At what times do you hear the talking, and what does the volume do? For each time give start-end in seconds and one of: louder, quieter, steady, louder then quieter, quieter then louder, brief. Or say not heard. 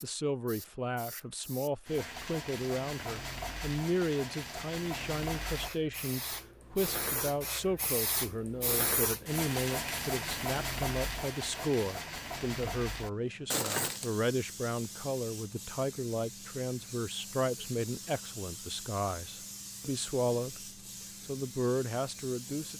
0.0-22.7 steady.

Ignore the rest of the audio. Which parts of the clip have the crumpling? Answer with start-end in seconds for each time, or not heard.
13.5-14.1.